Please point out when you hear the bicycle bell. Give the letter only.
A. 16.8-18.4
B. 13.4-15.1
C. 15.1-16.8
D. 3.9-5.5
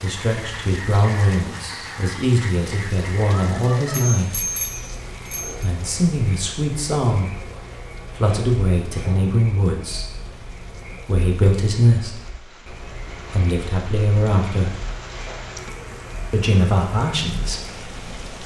D.